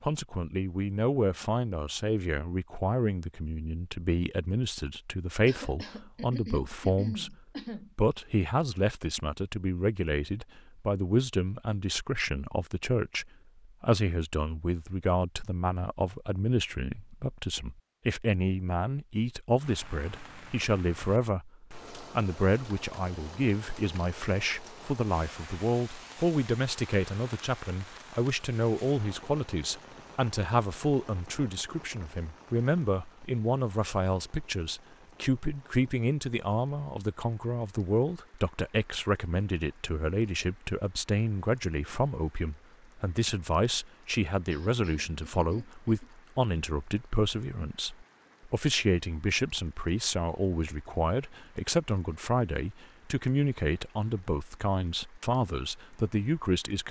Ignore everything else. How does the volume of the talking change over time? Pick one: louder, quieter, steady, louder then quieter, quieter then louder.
steady.